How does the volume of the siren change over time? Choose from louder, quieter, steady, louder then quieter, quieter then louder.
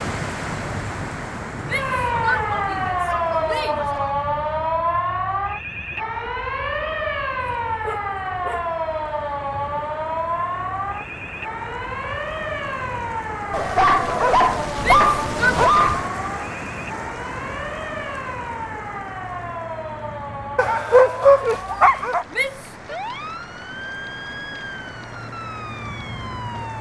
quieter.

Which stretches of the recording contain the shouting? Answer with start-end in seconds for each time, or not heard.
1.6-3.9, 14.8-15.6, 22.3-22.9.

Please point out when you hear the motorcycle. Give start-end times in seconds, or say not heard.
not heard.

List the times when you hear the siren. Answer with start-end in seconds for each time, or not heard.
1.6-26.7.